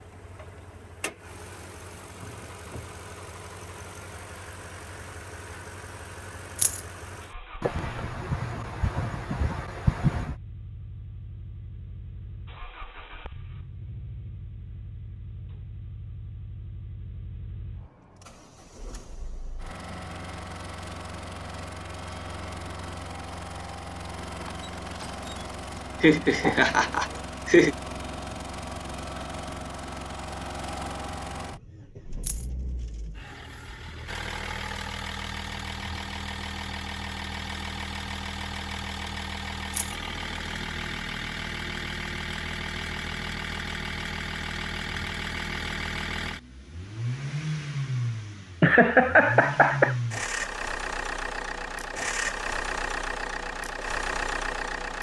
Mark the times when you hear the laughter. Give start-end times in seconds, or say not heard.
7.6-10.3, 26.0-27.8, 48.6-50.0.